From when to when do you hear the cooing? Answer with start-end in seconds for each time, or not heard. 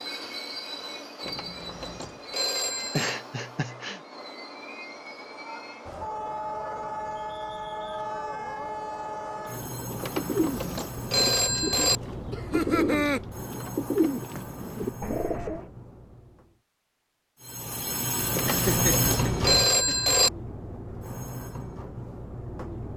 9.3-15.7.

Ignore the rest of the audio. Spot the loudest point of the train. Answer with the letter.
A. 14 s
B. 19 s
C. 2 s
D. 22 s
B.